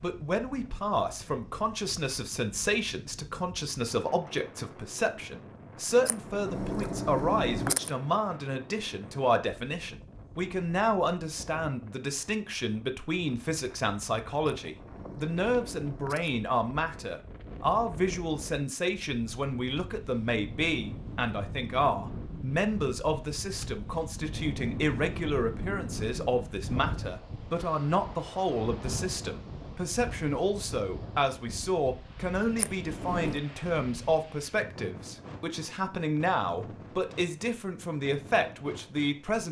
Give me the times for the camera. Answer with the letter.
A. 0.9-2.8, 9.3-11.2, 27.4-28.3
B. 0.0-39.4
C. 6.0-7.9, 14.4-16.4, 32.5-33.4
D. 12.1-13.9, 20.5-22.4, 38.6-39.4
C.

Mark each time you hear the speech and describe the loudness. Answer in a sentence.
You can hear the speech from 0.0 to 39.4 s, at a steady volume.